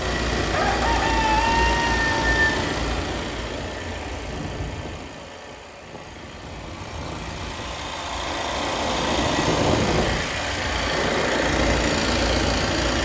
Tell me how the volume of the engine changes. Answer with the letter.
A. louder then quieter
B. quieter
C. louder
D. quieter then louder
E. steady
D.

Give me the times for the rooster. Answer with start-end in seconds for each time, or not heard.
0.5-2.5.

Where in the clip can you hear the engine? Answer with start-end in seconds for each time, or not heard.
0.0-13.0.